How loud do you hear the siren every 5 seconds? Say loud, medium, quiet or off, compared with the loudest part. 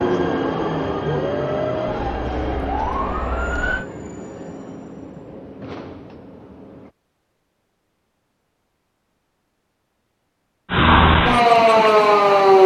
quiet, off, loud.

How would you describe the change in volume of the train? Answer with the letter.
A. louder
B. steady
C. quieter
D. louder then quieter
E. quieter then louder
C.